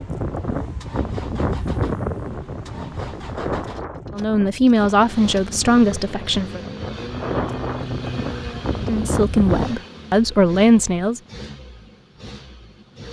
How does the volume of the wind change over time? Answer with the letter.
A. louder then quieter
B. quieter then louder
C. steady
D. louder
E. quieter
B.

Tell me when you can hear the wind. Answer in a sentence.
You can hear the wind from 0.0 to 9.8 s.